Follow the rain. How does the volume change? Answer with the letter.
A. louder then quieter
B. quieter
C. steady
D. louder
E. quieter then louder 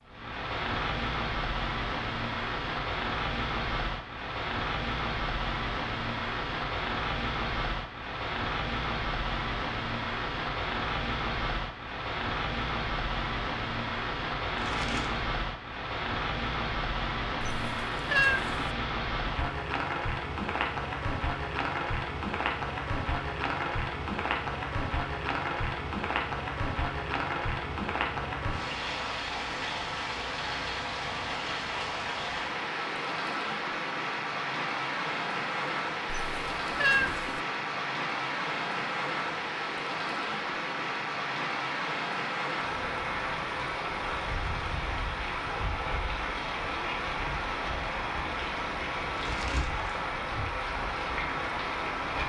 C.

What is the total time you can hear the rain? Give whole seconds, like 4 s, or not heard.
52 s.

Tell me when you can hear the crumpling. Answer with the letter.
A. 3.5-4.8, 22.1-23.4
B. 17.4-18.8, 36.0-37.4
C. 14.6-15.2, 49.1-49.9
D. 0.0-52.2
C.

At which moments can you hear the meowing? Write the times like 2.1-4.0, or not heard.
17.4-18.8, 36.0-37.4.